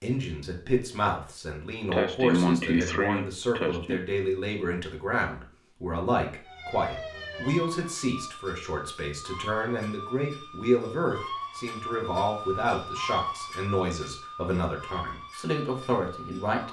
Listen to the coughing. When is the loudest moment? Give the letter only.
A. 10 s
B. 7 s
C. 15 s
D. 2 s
D.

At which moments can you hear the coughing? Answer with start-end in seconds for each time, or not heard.
1.9-4.0.